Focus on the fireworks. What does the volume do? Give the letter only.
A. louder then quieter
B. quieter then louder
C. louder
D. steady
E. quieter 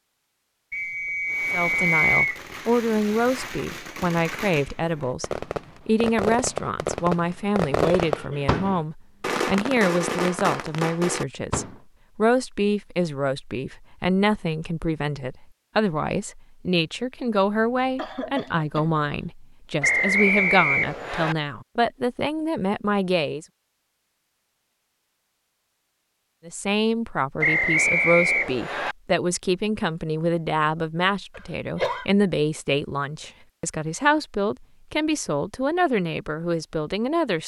C.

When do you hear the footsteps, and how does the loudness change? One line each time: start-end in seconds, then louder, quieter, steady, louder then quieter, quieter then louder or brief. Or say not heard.
not heard.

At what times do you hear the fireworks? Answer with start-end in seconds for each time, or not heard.
1.2-11.8.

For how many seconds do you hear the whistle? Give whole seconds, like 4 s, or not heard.
5 s.